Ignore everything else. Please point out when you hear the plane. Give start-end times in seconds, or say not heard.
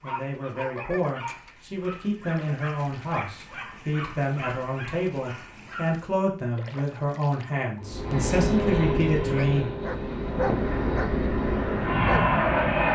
7.8-12.9.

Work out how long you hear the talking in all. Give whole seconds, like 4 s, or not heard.
10 s.